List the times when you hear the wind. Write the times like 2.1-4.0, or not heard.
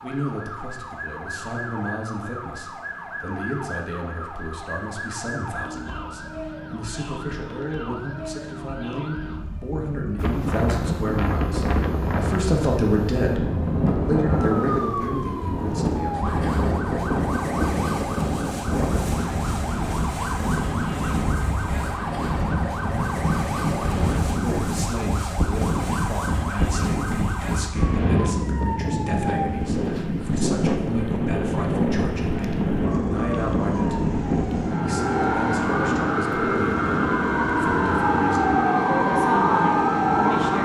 10.2-40.6.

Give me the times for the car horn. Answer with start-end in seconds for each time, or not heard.
27.7-28.4.